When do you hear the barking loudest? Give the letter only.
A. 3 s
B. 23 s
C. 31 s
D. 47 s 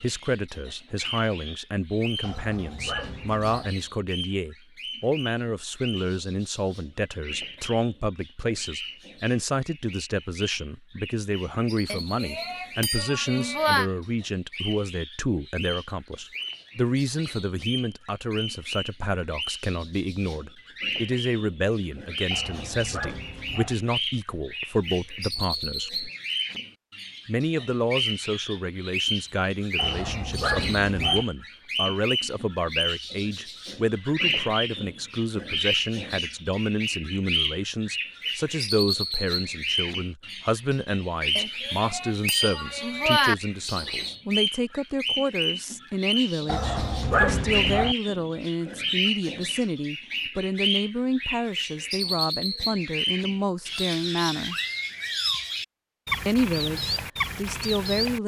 D.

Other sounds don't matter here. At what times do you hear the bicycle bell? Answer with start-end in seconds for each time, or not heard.
11.8-13.9, 41.4-43.4.